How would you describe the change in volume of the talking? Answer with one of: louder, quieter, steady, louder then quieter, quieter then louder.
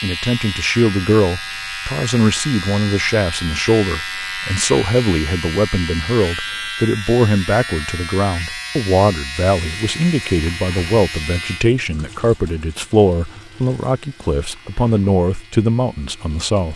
steady.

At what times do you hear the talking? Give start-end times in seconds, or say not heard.
0.0-16.7.